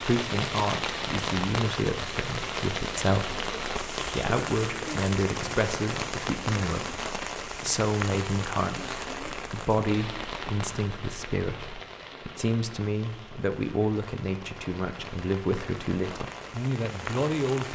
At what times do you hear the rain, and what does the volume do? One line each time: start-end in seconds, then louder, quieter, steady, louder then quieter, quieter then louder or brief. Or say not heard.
0.0-17.7 quieter.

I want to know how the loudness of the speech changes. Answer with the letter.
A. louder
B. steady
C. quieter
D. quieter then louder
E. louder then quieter
B.